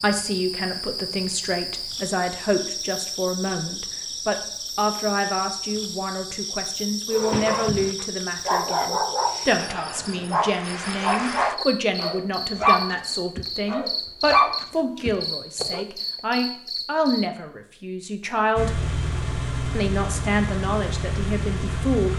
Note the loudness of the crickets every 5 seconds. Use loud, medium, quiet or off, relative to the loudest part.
loud, loud, loud, loud, off.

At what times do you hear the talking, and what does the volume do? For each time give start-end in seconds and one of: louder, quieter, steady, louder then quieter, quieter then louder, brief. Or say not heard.
0.0-18.7 steady
19.7-22.1 brief.